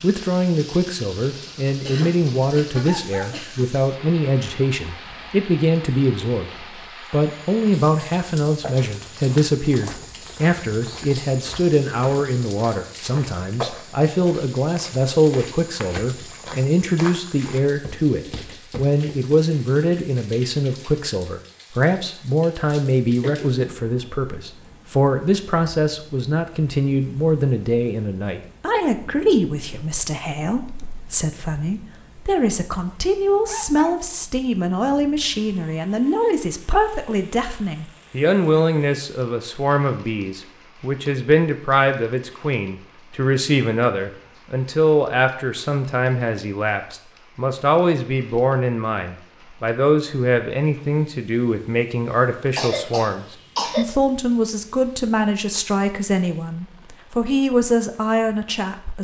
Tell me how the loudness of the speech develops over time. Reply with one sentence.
The volume of the speech stays about the same.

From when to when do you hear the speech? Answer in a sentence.
The speech can be heard from 0.0 to 6.5 s and from 7.1 to 58.9 s.